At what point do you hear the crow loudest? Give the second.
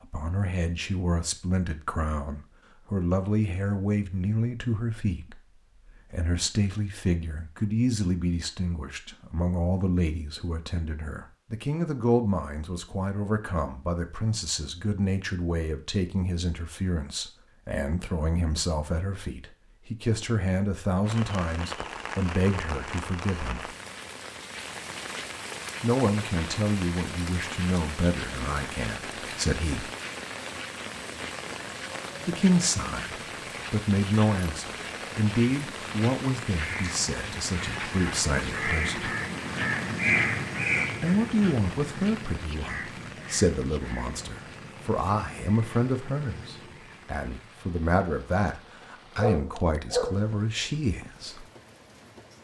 40 s.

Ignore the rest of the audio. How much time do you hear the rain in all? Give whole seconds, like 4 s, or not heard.
31 s.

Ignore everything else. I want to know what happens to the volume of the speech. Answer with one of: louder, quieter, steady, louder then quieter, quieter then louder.
steady.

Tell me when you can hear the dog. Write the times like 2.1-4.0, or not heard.
49.1-50.2.